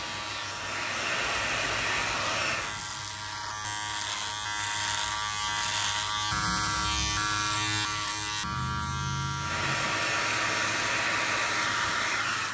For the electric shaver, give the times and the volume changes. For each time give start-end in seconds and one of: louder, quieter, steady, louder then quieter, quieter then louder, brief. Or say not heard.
0.0-12.5 louder then quieter.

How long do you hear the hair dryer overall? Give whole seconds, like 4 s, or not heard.
6 s.